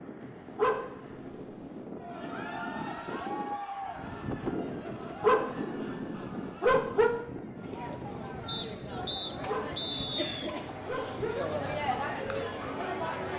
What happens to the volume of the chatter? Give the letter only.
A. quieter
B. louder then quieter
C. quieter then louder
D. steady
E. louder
C.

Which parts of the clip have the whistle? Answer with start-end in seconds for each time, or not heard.
8.4-10.5.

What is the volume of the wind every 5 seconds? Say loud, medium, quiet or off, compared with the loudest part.
loud, loud, medium.